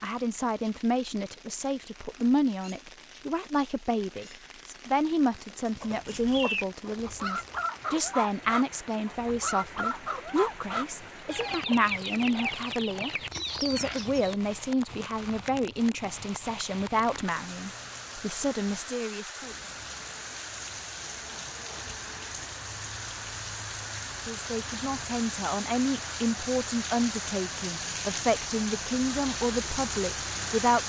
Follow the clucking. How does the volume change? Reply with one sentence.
The volume of the clucking stays about the same.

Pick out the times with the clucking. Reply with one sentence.
You can hear the clucking from 5.7 to 14.4 s.